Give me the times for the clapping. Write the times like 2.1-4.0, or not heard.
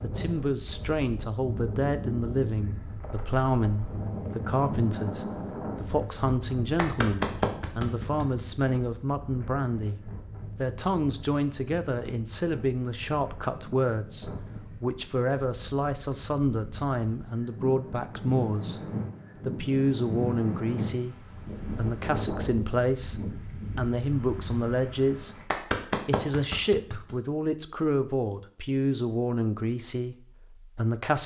6.8-8.4, 25.5-27.1.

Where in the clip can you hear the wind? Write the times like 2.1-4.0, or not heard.
0.0-25.4.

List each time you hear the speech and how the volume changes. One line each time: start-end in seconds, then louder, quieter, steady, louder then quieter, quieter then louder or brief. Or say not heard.
0.0-31.2 steady.